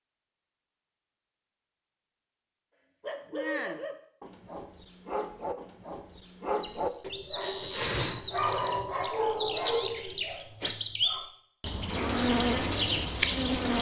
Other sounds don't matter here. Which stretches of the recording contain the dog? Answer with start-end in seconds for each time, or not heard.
3.0-11.3.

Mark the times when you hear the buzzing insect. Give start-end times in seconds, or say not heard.
11.9-13.7.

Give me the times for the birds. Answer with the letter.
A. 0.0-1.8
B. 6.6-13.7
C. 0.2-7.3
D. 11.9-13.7
B.